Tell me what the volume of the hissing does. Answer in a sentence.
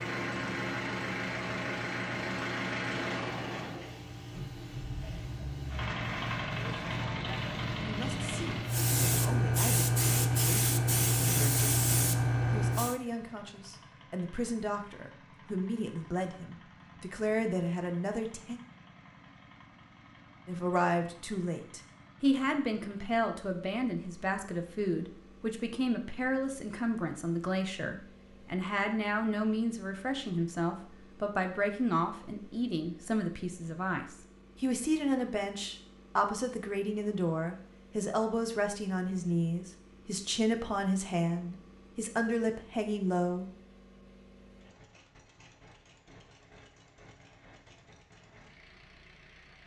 The volume of the hissing goes up.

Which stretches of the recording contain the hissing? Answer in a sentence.
You can hear the hissing from 0.0 to 12.9 s.